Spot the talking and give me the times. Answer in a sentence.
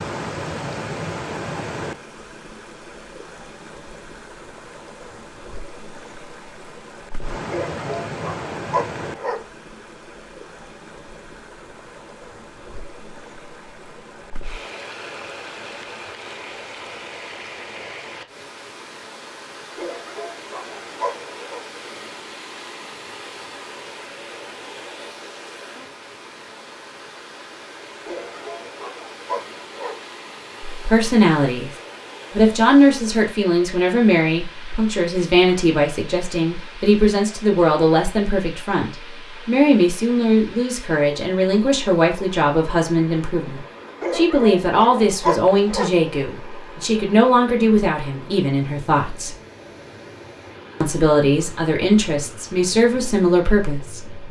The talking can be heard from 30.7 to 31.7 s, from 32.3 to 49.4 s and from 50.8 to 54.2 s.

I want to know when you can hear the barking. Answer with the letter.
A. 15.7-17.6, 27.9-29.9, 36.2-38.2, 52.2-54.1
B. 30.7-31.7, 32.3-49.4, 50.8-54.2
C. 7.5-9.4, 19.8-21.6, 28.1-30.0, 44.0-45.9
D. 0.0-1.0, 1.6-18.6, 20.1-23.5
C.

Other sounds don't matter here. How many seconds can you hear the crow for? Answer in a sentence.
The crow can't be heard in this clip.